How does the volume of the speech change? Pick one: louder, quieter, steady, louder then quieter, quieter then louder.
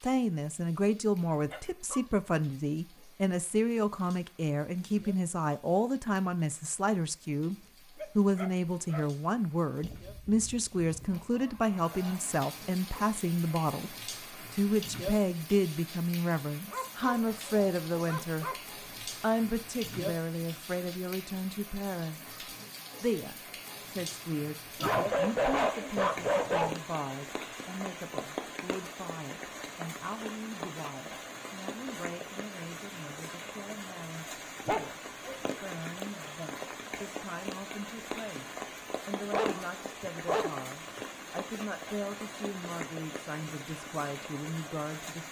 quieter.